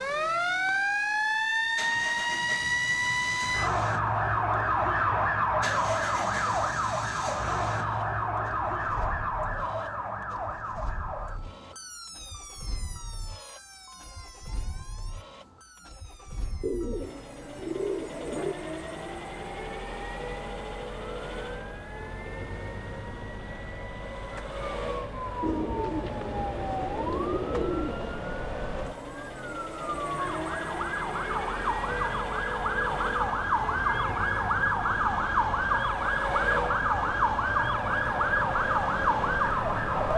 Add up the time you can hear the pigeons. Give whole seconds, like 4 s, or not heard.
5 s.